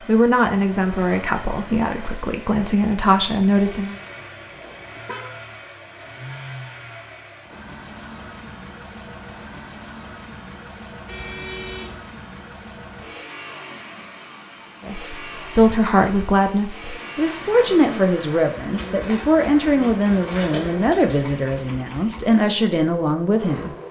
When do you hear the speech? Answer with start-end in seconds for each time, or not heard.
0.1-4.0, 14.8-23.8.